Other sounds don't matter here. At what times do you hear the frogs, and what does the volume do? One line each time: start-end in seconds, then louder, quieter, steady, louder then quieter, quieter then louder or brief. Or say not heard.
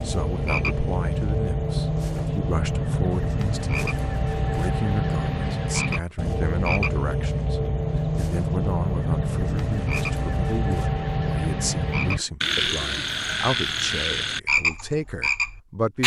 0.0-16.0 steady.